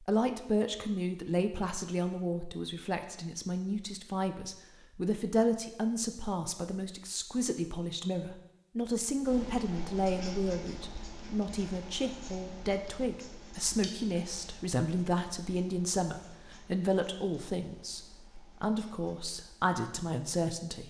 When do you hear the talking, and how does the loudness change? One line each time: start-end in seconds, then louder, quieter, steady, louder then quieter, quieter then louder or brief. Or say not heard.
0.0-20.8 steady.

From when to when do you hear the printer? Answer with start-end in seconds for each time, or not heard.
not heard.